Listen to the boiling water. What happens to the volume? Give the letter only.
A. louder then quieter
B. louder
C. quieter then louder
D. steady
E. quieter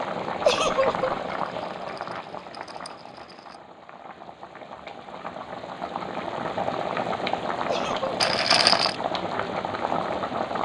C.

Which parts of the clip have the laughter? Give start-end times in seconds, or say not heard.
0.5-1.1, 7.7-8.2.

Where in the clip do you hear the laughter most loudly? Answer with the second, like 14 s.
1 s.